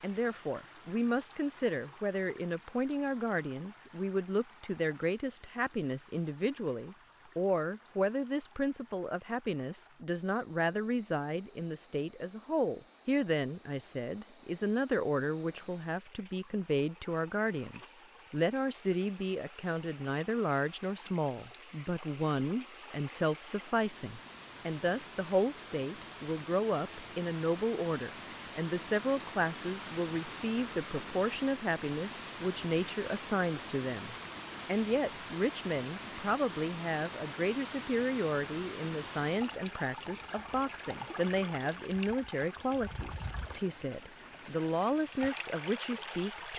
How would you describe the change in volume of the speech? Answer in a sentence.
The volume of the speech stays about the same.